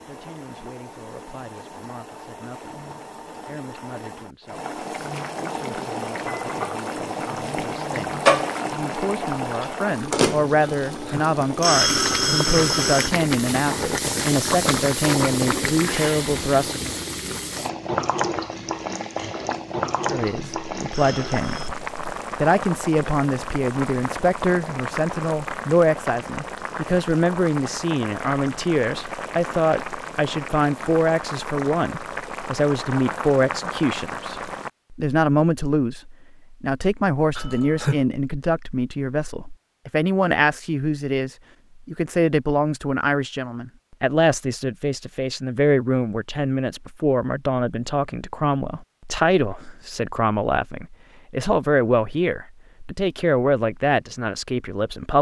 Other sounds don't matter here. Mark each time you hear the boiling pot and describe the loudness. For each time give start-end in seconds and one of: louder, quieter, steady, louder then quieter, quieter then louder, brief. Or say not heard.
0.0-34.7 louder then quieter.